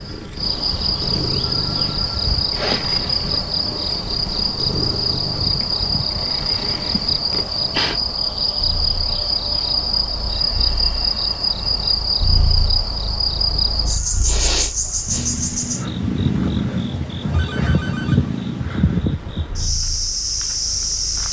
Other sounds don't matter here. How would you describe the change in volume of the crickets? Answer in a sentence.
The loudness of the crickets stays about the same.